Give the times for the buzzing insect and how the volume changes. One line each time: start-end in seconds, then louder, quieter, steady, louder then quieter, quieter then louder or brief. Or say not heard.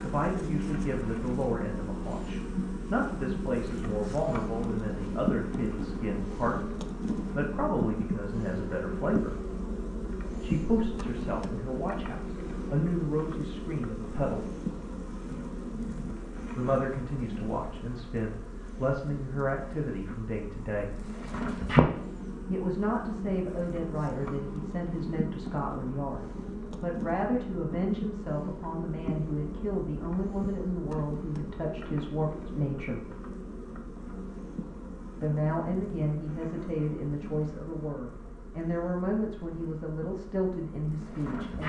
0.0-41.6 quieter.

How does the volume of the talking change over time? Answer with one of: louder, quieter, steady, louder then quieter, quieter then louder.
steady.